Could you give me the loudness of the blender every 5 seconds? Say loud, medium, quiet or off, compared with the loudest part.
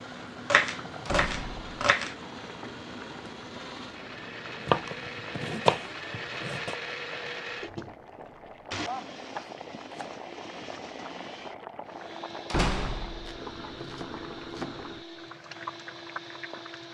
medium, loud, medium, medium.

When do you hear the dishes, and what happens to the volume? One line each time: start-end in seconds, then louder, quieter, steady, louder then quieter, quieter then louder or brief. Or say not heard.
not heard.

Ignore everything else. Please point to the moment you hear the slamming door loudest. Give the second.
13 s.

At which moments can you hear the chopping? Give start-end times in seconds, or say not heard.
0.5-2.1, 4.7-6.8, 8.8-10.2, 13.2-15.0.